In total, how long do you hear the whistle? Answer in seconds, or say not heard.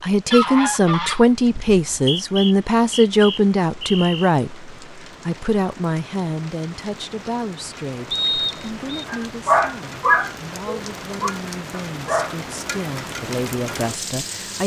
3 s.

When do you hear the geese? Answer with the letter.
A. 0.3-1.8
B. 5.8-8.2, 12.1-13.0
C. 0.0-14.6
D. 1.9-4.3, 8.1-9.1
A.